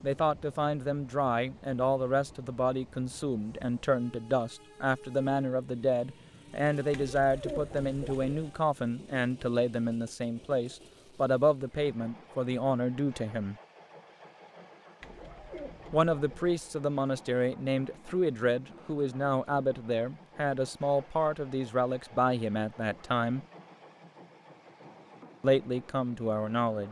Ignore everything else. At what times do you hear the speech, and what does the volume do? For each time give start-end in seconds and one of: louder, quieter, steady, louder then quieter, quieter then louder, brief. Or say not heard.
0.0-13.6 steady
15.9-23.4 steady
25.4-26.8 brief.